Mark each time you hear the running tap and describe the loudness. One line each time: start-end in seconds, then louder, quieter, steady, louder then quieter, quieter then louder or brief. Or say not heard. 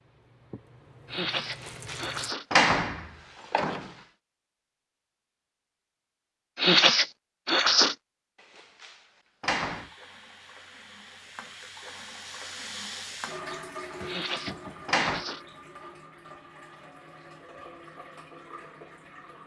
0.0-2.4 brief
9.7-19.4 louder then quieter.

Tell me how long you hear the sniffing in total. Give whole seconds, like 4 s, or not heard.
4 s.